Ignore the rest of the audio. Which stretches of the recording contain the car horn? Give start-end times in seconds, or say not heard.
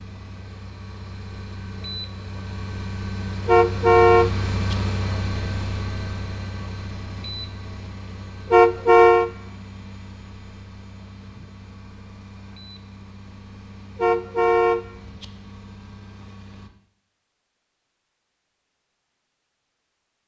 3.5-4.8, 8.5-9.3, 13.9-15.2.